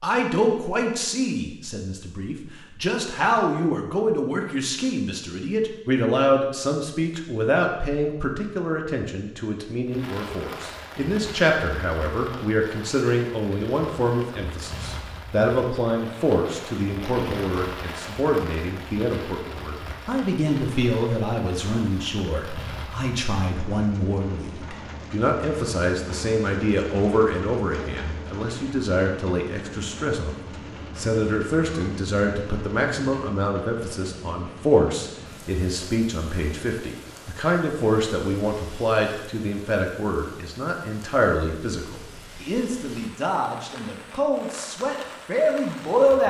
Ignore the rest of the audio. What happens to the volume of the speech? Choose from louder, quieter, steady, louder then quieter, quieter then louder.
steady.